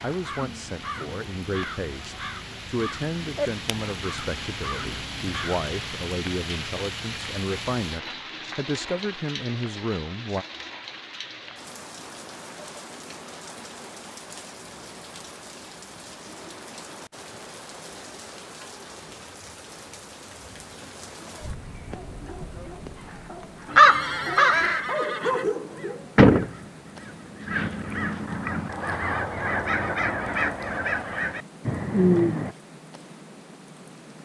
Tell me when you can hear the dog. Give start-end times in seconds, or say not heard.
21.6-26.1.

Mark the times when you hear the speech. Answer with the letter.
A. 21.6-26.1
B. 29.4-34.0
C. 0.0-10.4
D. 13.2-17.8
C.